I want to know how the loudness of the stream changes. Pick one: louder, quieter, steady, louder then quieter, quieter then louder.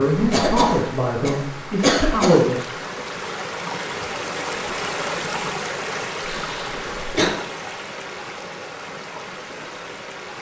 louder then quieter.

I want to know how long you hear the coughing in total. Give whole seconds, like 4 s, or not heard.
3 s.